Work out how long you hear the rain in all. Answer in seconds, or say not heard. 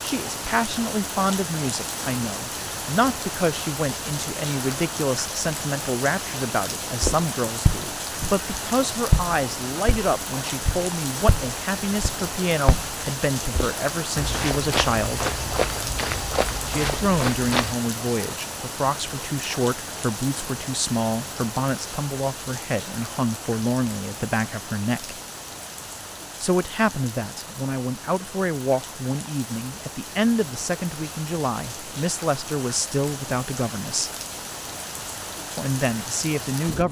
37 s.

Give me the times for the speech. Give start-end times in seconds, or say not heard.
0.0-15.2, 16.6-25.1, 26.4-34.1, 35.5-36.8.